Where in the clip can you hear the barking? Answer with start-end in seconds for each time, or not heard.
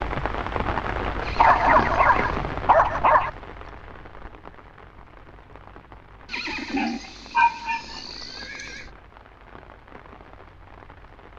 1.4-3.3, 6.5-8.0.